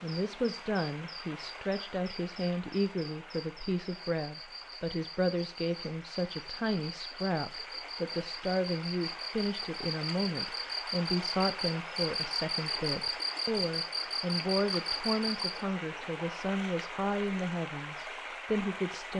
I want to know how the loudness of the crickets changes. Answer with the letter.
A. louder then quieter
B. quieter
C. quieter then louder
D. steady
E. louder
E.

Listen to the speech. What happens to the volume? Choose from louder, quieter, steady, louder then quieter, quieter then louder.
steady.